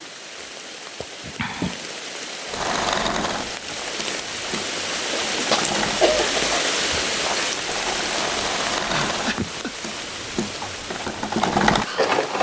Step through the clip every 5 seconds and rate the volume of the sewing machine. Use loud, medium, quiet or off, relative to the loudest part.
medium, medium, loud.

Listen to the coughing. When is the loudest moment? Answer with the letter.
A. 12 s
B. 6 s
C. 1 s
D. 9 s
B.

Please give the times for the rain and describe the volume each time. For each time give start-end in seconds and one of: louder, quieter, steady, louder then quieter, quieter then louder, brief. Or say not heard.
0.0-12.3 louder then quieter.